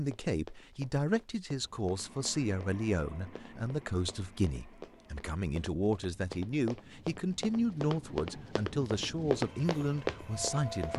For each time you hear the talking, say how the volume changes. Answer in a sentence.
The talking can be heard from 0.0 to 10.9 s, at a steady volume.